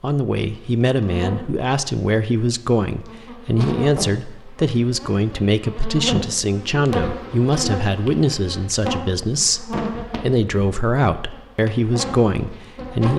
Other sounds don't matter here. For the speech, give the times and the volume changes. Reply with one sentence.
You can hear the speech from 0.0 to 13.1 s, at a steady volume.